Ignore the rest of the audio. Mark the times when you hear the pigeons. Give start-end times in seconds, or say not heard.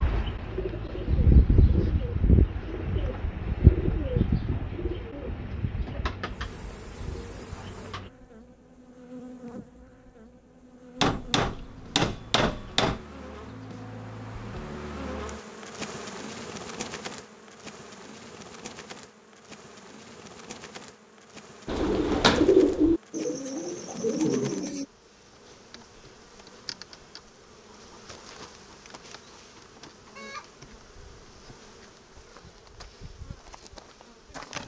0.0-8.1, 21.6-24.9.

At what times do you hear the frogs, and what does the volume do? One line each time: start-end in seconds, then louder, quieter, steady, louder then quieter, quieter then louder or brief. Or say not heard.
not heard.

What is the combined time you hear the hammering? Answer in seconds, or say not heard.
2 s.